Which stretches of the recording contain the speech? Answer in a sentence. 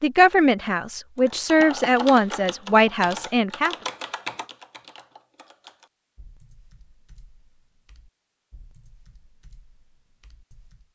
You can hear the speech from 0.0 to 3.8 s.